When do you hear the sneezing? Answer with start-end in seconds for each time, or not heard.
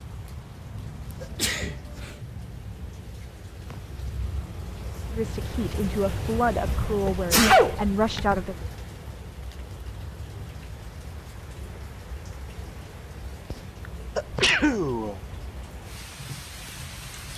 1.2-2.1, 6.8-8.6, 14.2-15.2.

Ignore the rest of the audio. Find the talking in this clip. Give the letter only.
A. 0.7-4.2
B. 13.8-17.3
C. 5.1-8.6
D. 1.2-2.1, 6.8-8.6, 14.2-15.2
C.